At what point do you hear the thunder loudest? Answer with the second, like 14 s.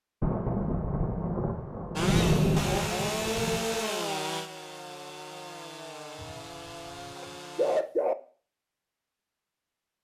2 s.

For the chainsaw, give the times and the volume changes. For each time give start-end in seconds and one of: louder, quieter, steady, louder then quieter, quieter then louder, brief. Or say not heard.
1.9-7.8 quieter.